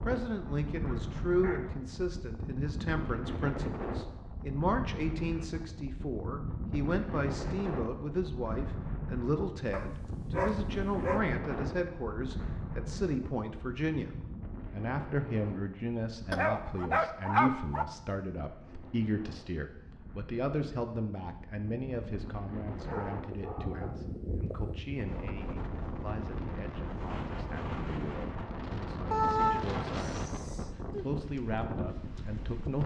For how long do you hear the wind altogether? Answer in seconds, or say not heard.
33 s.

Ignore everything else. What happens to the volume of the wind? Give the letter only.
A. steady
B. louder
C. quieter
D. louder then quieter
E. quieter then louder
E.